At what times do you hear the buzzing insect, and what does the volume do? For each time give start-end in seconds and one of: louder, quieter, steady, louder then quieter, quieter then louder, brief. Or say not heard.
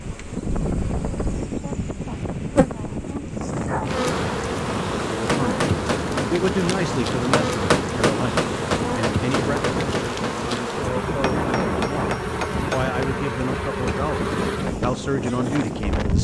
0.0-16.1 steady.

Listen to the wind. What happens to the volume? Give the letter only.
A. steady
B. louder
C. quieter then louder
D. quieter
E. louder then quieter
A.